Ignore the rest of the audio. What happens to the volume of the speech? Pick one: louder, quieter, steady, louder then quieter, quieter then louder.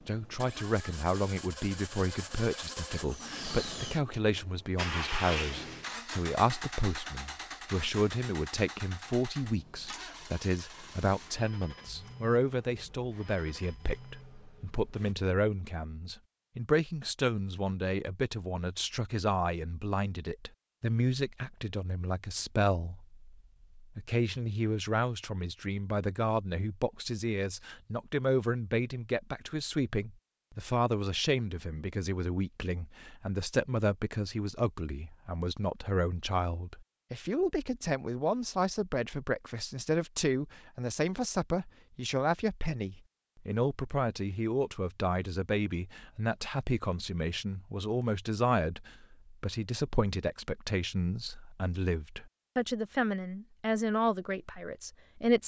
steady.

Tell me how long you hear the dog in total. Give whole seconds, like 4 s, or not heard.
not heard.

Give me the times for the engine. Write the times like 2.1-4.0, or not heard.
0.0-15.2.